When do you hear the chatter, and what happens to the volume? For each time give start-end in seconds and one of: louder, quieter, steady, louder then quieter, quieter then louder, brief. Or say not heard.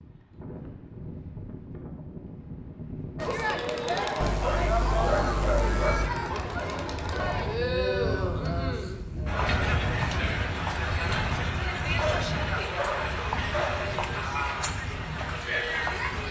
3.1-16.2 steady.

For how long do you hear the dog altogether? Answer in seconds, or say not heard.
4 s.